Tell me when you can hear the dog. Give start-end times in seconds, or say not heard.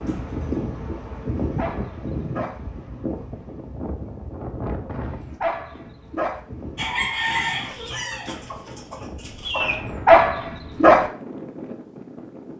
1.1-2.6, 4.9-6.4, 9.6-11.1.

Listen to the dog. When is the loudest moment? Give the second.
10 s.